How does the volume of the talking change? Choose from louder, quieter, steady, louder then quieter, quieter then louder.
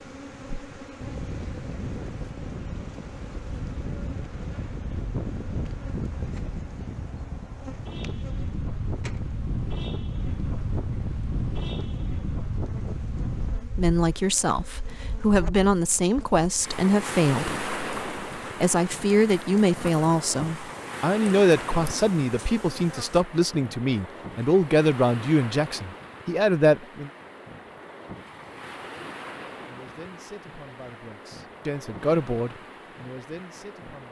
quieter.